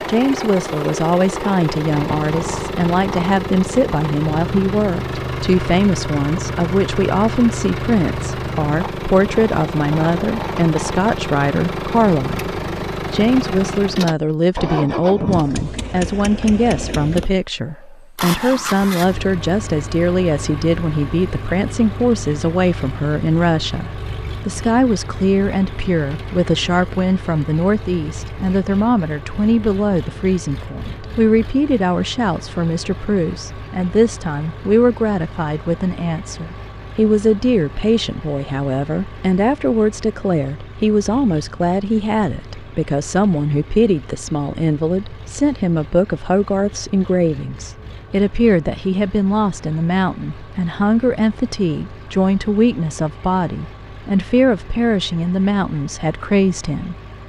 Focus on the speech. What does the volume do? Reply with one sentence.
The volume of the speech stays about the same.